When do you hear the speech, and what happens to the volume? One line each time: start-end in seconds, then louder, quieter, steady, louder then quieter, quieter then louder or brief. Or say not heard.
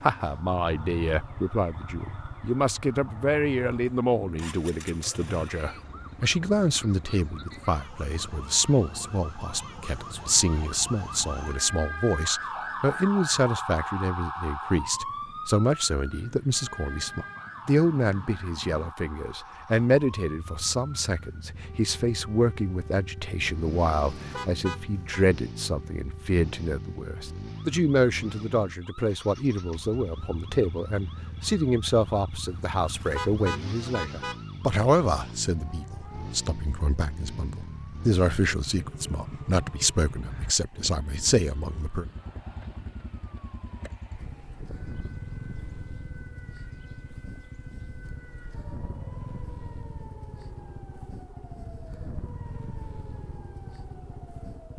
0.0-42.0 steady.